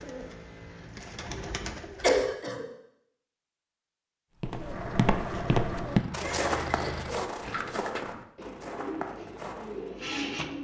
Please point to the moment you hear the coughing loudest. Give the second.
2 s.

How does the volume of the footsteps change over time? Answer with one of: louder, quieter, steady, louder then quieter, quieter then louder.
quieter.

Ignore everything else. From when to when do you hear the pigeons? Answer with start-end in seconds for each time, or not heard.
0.0-2.4, 4.5-10.5.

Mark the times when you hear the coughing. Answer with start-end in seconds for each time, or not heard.
2.0-2.6, 6.2-7.1.